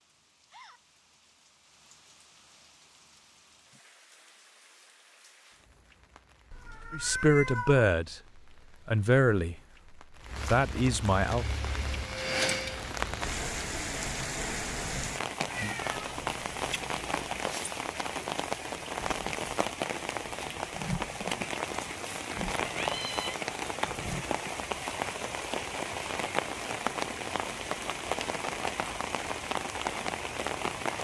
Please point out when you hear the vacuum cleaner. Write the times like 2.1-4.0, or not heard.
11.2-12.9.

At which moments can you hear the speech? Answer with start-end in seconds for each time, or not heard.
6.9-8.2, 8.8-9.6, 10.4-11.4.